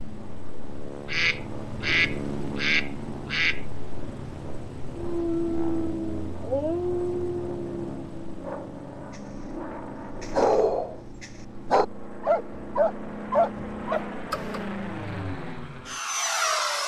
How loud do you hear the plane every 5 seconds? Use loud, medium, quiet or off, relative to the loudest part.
medium, medium, medium, loud.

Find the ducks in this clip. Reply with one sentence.
You can hear the ducks from 1.1 to 3.6 s.